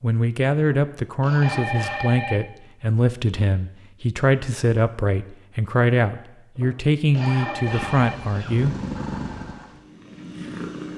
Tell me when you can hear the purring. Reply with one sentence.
You can hear the purring from 7.6 to 10.9 s.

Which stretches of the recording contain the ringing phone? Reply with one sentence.
The ringing phone can be heard from 1.4 to 2.5 s and from 7.2 to 8.2 s.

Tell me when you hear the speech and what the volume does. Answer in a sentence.
You can hear the speech from 0.0 to 8.8 s, at a steady volume.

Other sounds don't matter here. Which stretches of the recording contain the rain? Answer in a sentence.
You can't hear the rain here.